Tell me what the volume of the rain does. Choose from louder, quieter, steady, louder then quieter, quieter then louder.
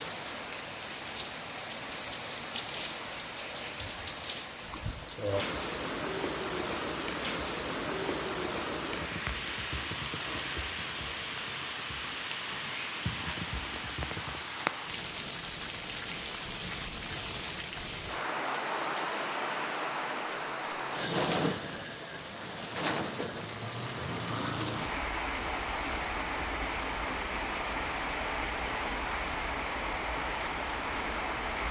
steady.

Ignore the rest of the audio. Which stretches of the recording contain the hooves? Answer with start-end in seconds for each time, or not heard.
8.9-14.3.